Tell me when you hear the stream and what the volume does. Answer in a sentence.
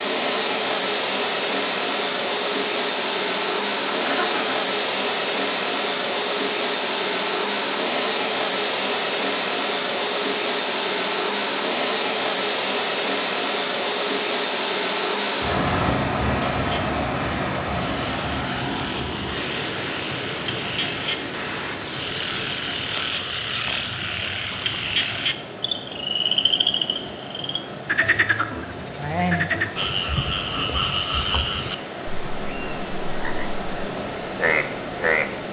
You can hear the stream from 0.0 to 35.4 s, getting quieter.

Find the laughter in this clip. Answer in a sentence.
You can hear the laughter from 3.9 to 4.5 s.